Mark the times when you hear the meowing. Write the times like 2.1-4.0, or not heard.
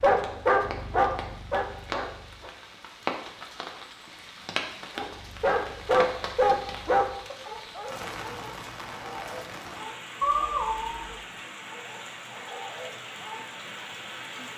10.2-11.1.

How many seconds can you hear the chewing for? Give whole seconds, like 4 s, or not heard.
not heard.